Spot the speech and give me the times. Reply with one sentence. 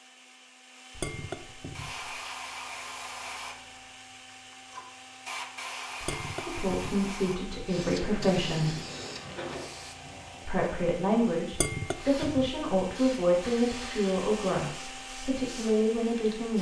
You can hear the speech from 6.4 to 8.8 s and from 10.4 to 16.5 s.